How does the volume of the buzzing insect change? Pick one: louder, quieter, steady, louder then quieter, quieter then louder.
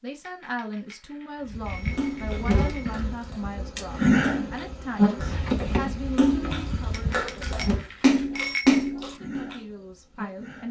louder then quieter.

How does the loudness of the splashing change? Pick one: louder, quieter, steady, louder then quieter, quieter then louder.
louder.